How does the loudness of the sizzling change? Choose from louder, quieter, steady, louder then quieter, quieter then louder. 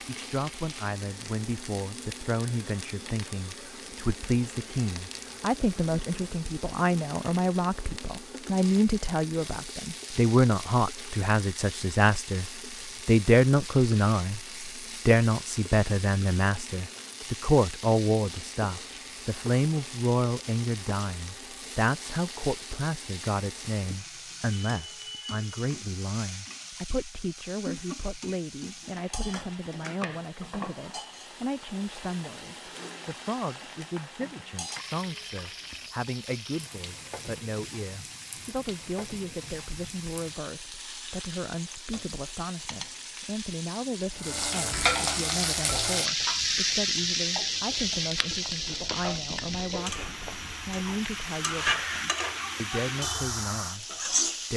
louder.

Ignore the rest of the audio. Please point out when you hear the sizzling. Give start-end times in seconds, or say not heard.
0.0-54.5.